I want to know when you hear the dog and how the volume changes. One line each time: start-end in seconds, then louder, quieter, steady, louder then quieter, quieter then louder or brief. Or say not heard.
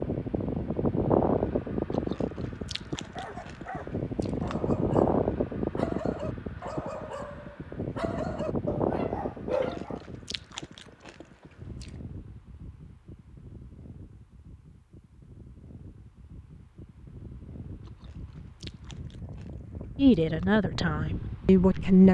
3.0-10.0 louder.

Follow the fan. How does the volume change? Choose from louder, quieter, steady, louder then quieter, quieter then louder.
quieter then louder.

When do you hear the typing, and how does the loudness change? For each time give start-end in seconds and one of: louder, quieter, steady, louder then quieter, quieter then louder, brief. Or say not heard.
not heard.